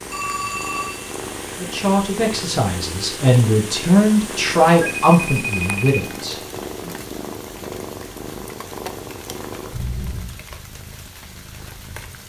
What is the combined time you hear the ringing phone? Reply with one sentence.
The ringing phone can be heard for 3 seconds in total.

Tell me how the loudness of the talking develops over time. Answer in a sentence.
The loudness of the talking goes up, then down.